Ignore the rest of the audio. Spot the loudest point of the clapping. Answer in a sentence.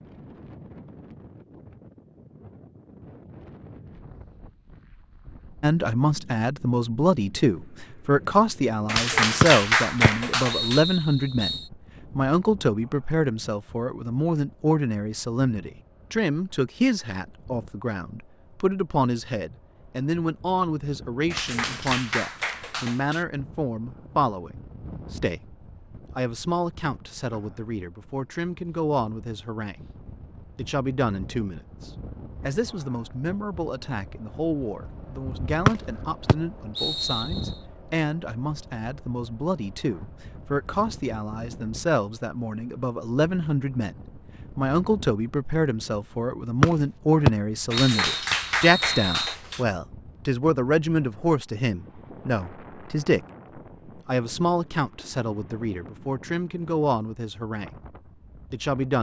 The loudest moment of the clapping is at 10 seconds.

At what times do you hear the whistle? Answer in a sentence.
The whistle can be heard from 9.4 to 11.7 s, from 35.6 to 37.5 s and from 46.6 to 49.4 s.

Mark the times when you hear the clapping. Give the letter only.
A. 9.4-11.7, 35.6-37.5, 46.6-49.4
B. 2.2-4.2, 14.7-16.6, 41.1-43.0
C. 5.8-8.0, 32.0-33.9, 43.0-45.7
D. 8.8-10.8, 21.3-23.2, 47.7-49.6
D.